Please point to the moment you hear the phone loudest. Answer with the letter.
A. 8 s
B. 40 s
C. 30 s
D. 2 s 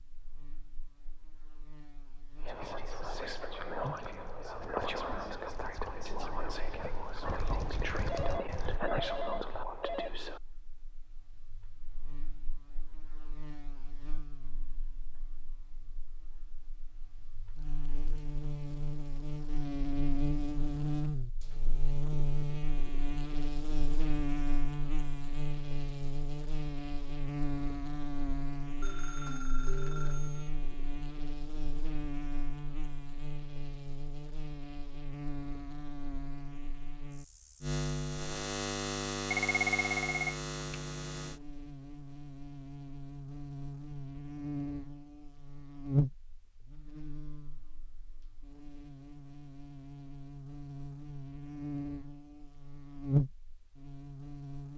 B.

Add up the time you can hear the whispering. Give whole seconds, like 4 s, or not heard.
8 s.